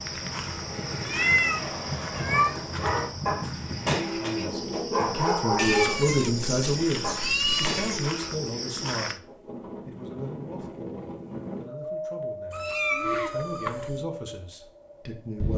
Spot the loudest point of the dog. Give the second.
6 s.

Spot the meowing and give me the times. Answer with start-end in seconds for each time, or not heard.
1.1-2.6, 5.5-8.1, 12.5-14.1.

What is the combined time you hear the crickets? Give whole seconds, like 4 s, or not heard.
9 s.